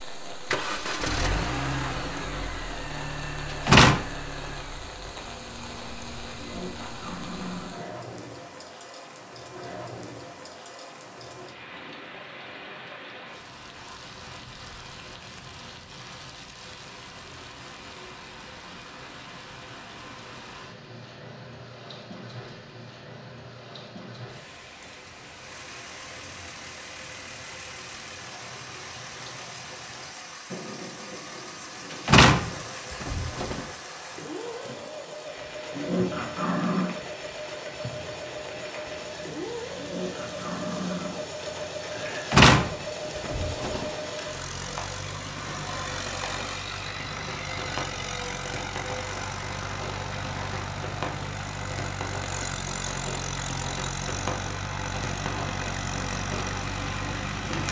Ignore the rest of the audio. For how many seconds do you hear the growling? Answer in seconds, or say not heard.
4 s.